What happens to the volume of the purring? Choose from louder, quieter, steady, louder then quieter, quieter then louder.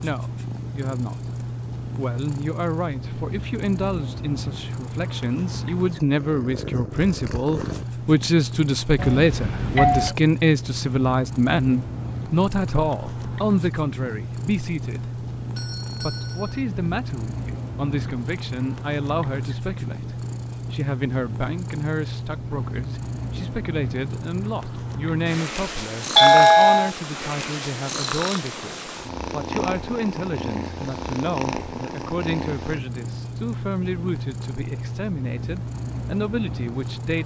steady.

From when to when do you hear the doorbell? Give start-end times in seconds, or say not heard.
8.9-10.2, 15.6-16.6, 26.1-26.9.